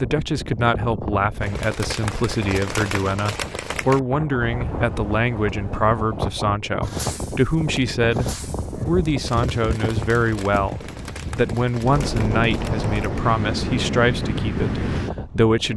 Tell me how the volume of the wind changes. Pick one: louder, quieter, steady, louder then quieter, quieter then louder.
louder.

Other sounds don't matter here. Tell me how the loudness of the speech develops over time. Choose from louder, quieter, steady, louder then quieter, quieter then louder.
steady.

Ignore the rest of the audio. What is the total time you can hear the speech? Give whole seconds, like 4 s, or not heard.
16 s.